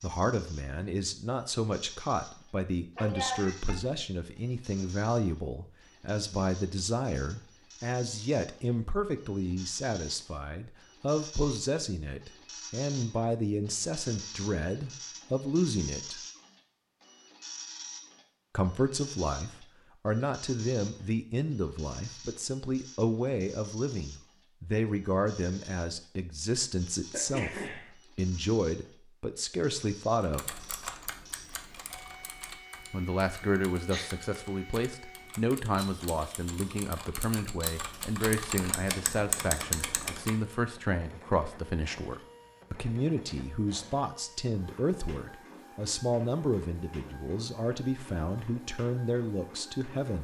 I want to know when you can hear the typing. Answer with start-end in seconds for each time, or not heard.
30.2-40.5.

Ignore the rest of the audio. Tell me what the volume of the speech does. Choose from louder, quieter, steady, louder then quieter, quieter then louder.
steady.